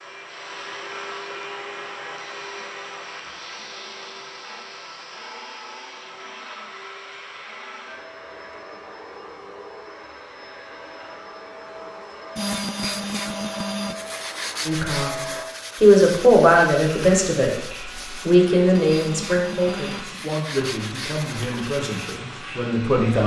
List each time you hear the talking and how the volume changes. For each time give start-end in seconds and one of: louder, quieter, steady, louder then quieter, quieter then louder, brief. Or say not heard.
14.7-15.1 brief
15.8-23.2 quieter.